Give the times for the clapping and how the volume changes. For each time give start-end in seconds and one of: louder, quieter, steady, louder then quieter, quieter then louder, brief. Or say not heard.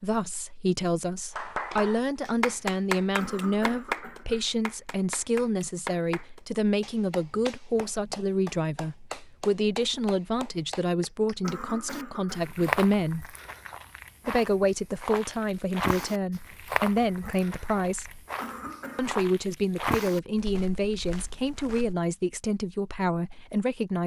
1.4-11.6 quieter.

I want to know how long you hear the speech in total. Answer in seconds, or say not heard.
22 s.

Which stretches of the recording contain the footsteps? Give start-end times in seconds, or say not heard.
11.8-21.9.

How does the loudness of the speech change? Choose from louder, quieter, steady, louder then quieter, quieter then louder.
steady.